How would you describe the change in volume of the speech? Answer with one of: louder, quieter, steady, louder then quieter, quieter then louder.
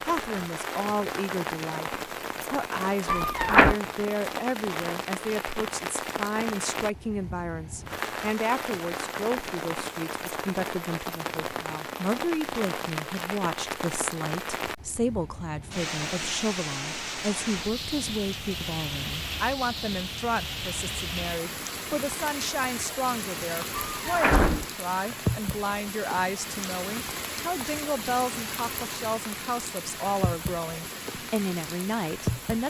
steady.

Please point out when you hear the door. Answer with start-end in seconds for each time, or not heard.
3.0-3.8, 23.8-24.6.